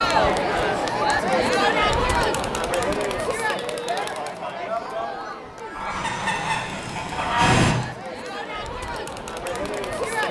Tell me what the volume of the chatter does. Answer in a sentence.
The loudness of the chatter goes down, then up.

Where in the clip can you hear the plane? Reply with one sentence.
You can hear the plane from 5.8 to 7.8 s.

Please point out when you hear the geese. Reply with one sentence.
You can hear the geese from 5.7 to 7.8 s.